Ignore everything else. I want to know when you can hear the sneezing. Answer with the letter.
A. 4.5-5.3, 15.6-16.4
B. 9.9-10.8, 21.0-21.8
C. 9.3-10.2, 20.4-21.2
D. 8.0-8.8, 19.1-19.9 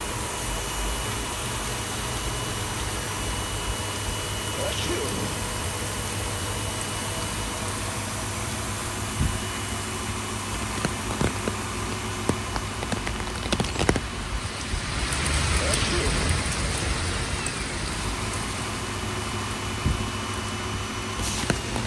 A.